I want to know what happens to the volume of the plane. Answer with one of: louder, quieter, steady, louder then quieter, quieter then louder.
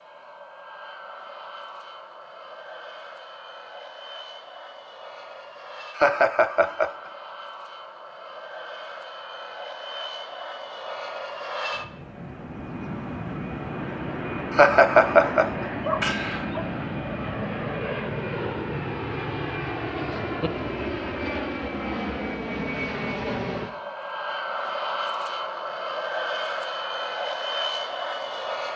louder.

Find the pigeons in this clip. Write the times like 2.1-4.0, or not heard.
not heard.